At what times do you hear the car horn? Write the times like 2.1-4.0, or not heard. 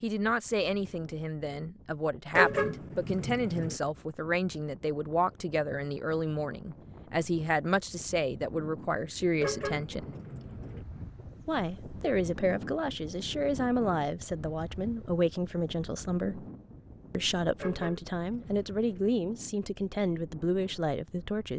2.3-3.8, 9.4-10.8, 17.6-19.1.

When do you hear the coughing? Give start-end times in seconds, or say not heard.
not heard.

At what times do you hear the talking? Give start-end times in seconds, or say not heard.
0.0-10.1, 11.4-16.4, 17.1-21.5.